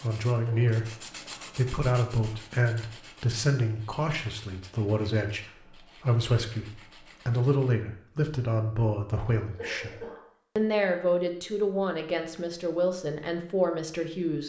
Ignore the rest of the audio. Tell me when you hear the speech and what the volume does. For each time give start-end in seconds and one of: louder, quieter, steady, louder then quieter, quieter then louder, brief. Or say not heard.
0.0-14.4 steady.